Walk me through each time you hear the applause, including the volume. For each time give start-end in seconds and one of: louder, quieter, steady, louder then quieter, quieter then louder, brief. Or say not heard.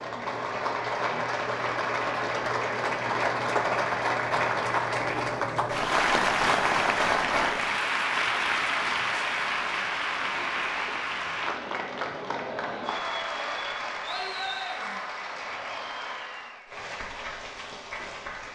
0.0-18.5 quieter.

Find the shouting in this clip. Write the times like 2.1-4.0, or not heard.
14.1-15.1.